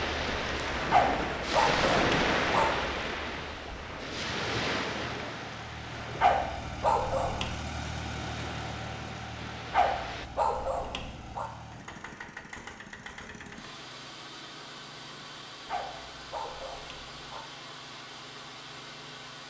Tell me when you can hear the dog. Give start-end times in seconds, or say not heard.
0.9-2.9, 6.2-7.6, 9.7-11.5, 15.7-17.4.